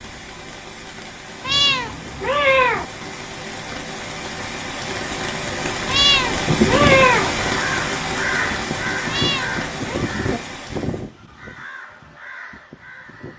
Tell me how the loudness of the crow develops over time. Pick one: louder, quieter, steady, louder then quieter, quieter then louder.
quieter.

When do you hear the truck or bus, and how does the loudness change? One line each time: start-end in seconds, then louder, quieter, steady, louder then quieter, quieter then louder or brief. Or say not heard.
not heard.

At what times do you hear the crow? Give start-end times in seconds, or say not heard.
6.3-13.3.